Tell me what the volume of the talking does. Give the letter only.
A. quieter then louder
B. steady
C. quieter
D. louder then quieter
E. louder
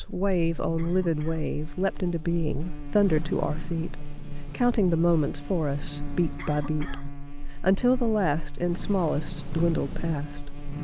B.